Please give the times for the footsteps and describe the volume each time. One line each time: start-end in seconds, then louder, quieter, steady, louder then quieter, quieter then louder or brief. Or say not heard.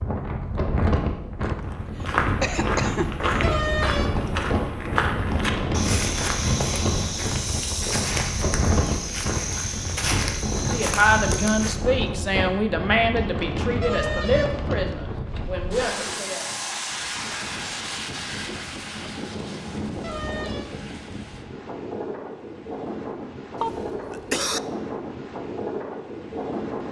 1.6-11.8 steady.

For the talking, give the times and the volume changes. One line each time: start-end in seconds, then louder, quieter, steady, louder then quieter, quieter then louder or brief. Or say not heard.
10.7-16.5 quieter.